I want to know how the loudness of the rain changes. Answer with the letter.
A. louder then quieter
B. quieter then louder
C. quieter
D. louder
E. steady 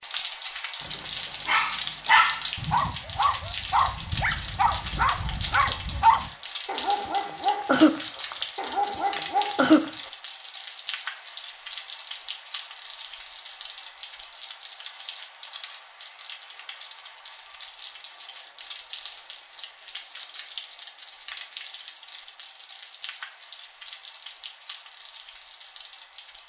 C.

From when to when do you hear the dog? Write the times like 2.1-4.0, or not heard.
0.8-9.9.